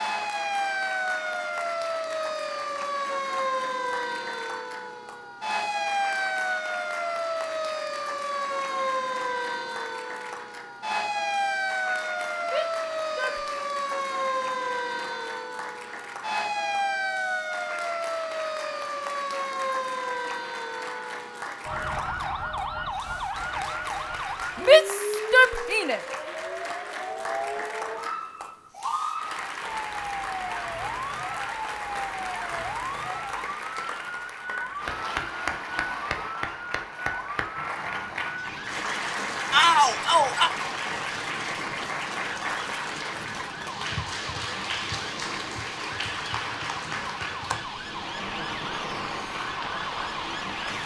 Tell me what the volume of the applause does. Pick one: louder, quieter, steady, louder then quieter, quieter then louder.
louder.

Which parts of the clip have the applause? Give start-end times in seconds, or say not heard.
0.0-50.8.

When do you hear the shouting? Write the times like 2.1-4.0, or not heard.
12.4-13.4, 24.6-26.0, 39.5-40.5.